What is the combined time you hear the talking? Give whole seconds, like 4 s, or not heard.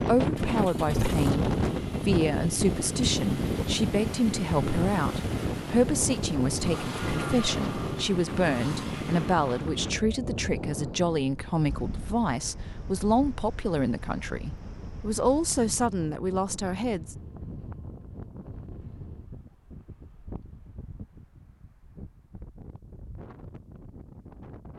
17 s.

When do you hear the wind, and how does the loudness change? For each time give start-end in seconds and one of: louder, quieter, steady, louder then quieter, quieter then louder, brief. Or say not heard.
0.0-24.7 quieter.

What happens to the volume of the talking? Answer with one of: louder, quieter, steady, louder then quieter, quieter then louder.
steady.